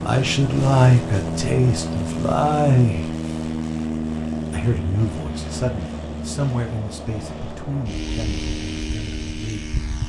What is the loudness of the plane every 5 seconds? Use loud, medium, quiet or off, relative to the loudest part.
loud, medium.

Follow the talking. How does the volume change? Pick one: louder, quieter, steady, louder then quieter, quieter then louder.
quieter.